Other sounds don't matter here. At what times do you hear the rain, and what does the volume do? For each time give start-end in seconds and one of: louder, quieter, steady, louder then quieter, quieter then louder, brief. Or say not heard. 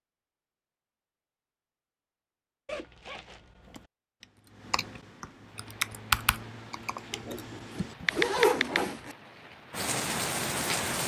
5.4-11.0 louder.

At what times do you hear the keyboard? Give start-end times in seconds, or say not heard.
3.6-8.8.